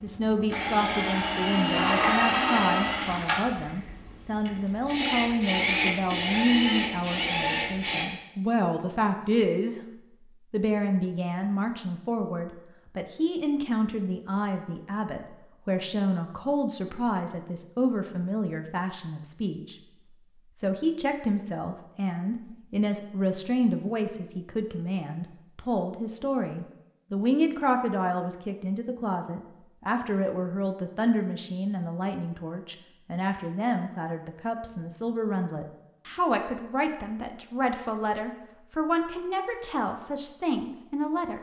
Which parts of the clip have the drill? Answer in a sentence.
You can hear the drill from 0.0 to 8.1 s.